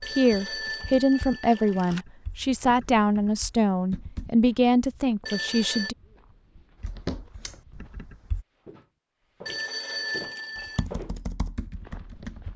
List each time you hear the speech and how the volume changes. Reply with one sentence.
You can hear the speech from 0.1 to 6.0 s, at a steady volume.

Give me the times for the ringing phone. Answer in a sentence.
You can hear the ringing phone from 0.0 to 2.0 s, from 5.2 to 5.9 s and from 9.4 to 10.8 s.